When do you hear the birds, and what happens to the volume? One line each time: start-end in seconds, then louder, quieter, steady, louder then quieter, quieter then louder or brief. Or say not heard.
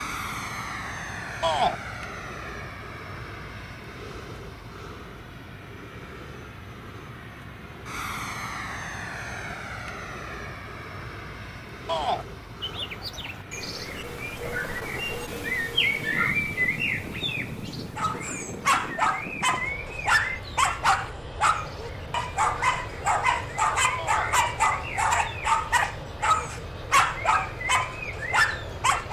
12.6-29.0 quieter.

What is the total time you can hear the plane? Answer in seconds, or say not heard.
29 s.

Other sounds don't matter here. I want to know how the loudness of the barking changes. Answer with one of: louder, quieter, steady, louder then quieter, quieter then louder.
steady.